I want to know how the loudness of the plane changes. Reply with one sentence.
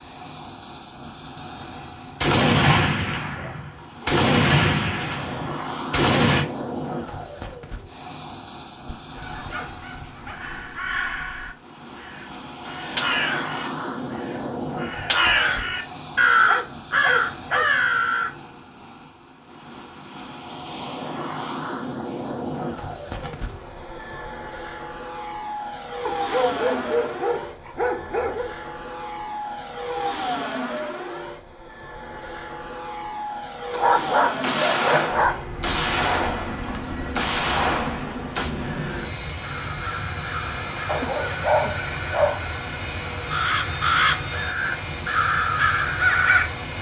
The loudness of the plane stays about the same.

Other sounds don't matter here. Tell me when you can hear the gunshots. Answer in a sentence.
You can hear the gunshots from 2.2 to 6.5 s, from 23.2 to 23.8 s and from 34.4 to 38.5 s.